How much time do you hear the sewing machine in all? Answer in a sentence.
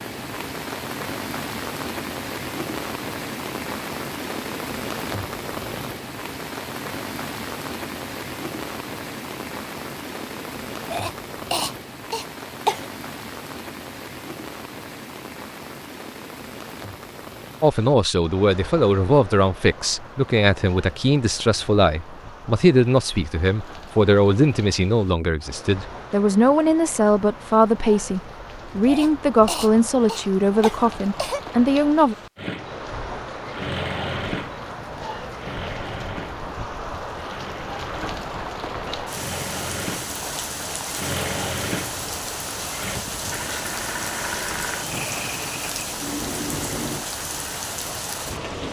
The sewing machine can be heard for 15 seconds in total.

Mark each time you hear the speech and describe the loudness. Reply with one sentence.
You can hear the speech from 17.6 to 32.1 s, at a steady volume.